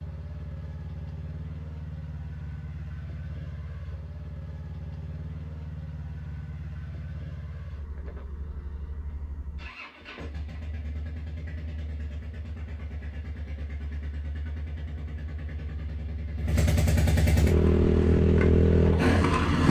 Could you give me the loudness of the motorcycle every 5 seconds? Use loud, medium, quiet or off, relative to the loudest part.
quiet, quiet, quiet, loud.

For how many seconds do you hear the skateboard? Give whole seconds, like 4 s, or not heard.
2 s.